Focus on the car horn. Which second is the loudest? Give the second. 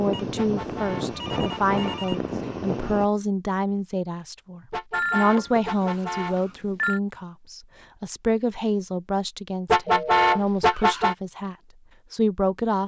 10 s.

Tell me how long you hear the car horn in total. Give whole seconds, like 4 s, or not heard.
5 s.